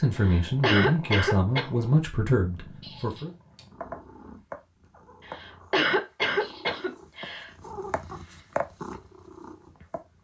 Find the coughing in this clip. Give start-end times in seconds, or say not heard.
0.1-1.6, 5.2-7.5.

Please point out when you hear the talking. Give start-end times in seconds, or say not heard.
0.0-3.3.